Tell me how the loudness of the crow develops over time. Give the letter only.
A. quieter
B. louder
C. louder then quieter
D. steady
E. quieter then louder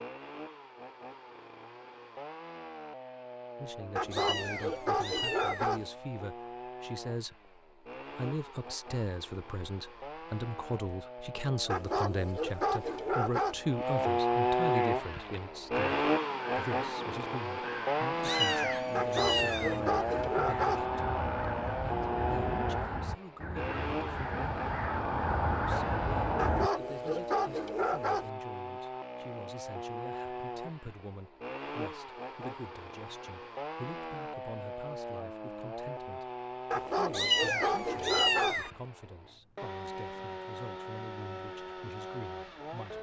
B.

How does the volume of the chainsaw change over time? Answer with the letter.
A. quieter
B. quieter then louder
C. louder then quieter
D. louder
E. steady
C.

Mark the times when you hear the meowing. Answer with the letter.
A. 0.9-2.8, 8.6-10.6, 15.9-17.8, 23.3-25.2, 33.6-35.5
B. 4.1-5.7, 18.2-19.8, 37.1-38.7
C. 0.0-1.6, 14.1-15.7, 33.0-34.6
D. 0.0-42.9
B.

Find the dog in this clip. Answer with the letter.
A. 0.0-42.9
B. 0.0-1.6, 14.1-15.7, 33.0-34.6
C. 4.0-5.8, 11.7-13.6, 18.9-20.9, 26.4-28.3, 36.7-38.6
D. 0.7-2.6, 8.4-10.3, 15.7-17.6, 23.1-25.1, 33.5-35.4
C.